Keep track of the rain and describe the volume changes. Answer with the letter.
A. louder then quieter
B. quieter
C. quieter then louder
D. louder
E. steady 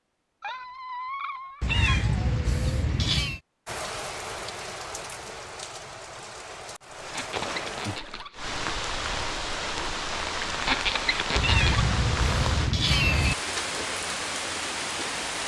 D.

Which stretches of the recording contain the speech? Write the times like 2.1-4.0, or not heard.
not heard.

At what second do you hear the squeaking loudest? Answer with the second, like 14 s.
11 s.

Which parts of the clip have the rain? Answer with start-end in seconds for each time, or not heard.
3.6-15.4.